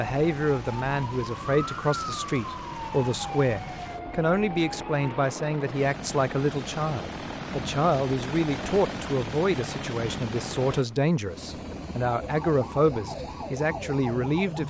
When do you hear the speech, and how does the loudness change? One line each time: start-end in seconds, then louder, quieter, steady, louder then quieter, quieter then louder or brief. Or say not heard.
0.0-14.6 steady.